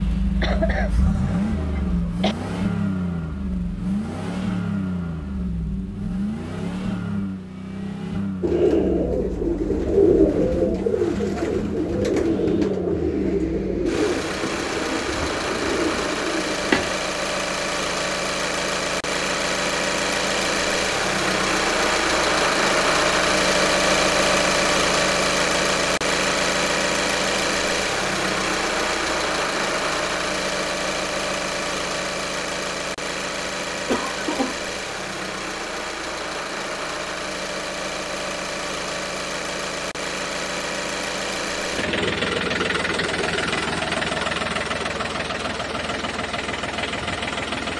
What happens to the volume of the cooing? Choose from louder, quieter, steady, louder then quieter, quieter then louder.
quieter.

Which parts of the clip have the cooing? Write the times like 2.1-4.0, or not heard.
8.4-16.9.